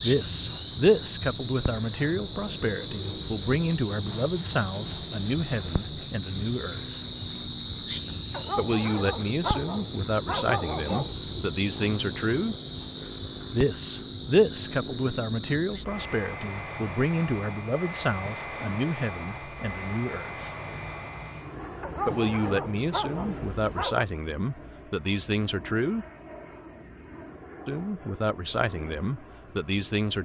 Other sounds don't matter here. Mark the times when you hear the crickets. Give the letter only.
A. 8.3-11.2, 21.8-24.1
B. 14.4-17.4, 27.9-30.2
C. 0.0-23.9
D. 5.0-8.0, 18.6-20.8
C.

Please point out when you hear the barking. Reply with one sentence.
You can hear the barking from 8.3 to 11.2 s and from 21.8 to 24.1 s.